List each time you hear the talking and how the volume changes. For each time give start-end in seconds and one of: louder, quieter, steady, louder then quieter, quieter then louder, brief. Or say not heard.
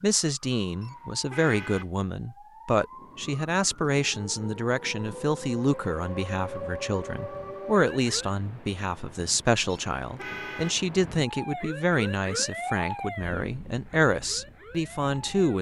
0.0-15.5 steady.